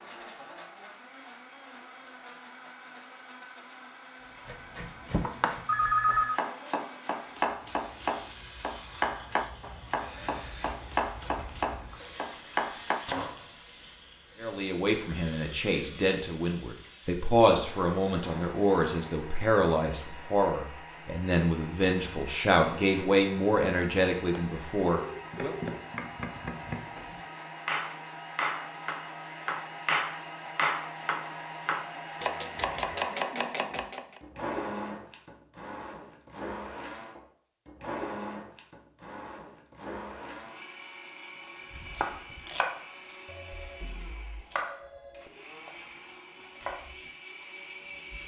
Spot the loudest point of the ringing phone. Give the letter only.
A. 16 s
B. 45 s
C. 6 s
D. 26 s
C.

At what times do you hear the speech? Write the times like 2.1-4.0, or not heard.
14.4-25.6.